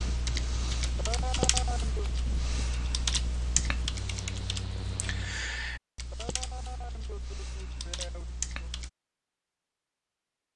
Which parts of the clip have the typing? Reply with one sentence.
The typing can be heard from 0.0 to 8.9 s.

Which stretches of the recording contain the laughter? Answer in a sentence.
The laughter can be heard from 0.9 to 2.1 s and from 6.1 to 8.7 s.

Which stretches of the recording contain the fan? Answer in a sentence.
The fan can be heard from 0.0 to 5.5 s.